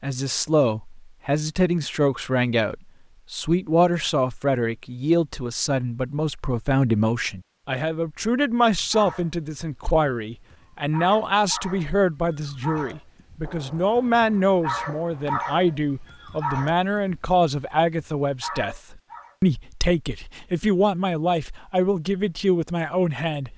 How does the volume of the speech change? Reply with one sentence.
The loudness of the speech stays about the same.